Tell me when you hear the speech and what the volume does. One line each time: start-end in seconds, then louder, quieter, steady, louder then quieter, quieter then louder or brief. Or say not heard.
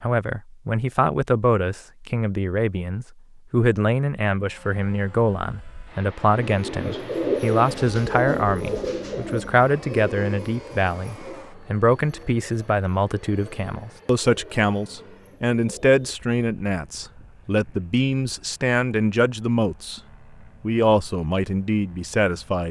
0.0-20.0 steady
20.6-22.6 brief.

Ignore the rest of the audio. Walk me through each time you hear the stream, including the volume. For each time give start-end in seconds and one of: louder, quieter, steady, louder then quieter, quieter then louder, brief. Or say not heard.
not heard.